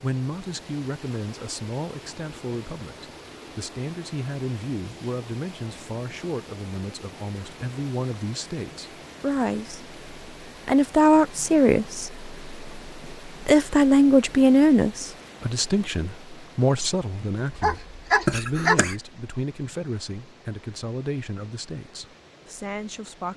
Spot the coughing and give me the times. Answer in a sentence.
The coughing can be heard from 18.2 to 18.9 s.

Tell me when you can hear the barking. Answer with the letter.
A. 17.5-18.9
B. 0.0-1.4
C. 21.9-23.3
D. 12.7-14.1
A.